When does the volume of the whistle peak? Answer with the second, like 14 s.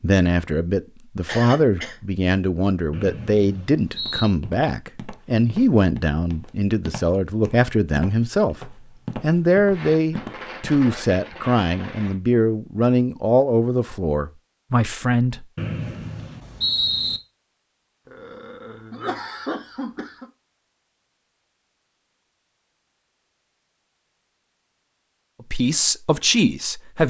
17 s.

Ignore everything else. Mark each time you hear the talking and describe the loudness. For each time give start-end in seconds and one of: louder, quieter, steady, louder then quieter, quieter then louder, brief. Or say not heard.
0.0-15.4 steady
25.5-27.0 brief.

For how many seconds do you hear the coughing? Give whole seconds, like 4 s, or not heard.
3 s.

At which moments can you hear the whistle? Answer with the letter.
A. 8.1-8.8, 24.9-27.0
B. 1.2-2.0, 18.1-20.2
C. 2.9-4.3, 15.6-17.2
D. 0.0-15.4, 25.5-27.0
C.